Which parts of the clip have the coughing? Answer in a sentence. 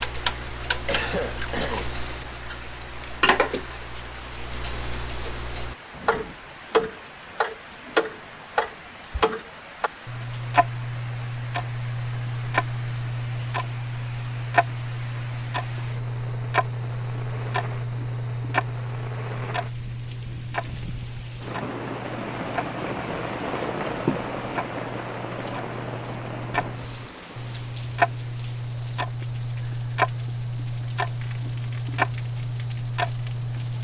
You can hear the coughing from 0.8 to 1.9 s.